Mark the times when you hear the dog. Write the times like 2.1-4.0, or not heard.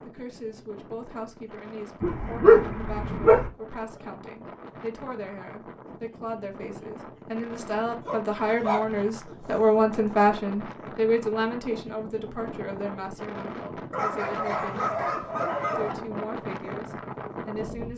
2.0-3.5, 8.1-10.1, 13.9-15.9.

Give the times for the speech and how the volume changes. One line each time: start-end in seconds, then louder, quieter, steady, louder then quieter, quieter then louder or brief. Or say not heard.
0.0-17.9 louder then quieter.